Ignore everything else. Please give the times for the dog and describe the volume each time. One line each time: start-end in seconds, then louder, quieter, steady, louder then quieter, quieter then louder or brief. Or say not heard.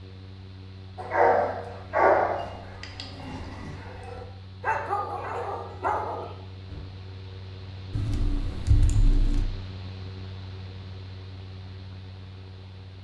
0.9-6.8 quieter then louder.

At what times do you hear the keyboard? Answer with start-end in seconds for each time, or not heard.
7.9-9.4.